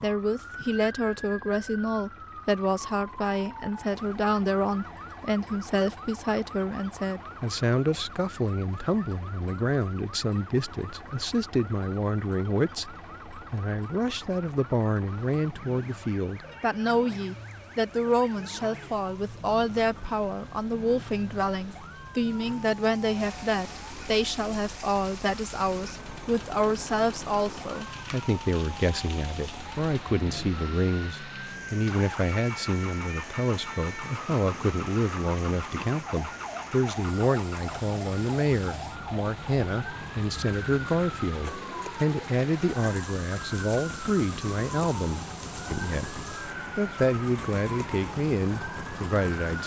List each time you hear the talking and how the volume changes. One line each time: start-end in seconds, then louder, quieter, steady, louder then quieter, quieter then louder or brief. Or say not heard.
0.0-49.6 steady.